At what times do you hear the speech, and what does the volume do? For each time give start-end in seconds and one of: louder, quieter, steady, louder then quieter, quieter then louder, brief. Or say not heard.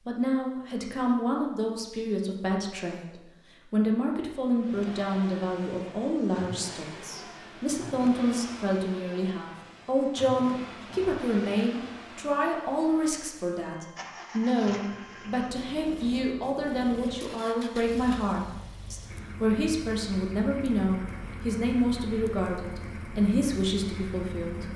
0.1-24.7 steady.